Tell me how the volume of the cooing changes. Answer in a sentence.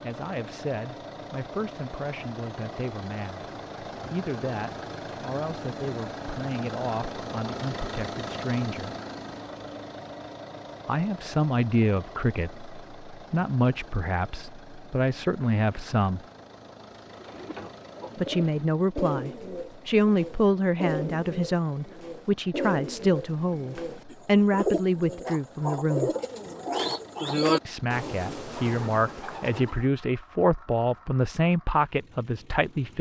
The volume of the cooing goes up.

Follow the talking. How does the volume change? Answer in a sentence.
The loudness of the talking goes up.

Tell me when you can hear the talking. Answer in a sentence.
You can hear the talking from 0.0 to 8.9 s, from 10.8 to 16.2 s, from 18.1 to 26.1 s and from 27.6 to 32.9 s.